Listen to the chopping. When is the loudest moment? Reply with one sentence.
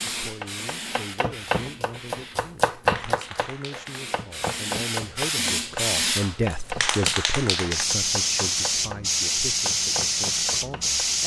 The loudest moment of the chopping is at 3 seconds.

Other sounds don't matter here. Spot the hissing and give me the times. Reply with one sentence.
You can hear the hissing from 0.0 to 11.2 s.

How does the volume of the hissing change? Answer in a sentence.
The volume of the hissing goes up.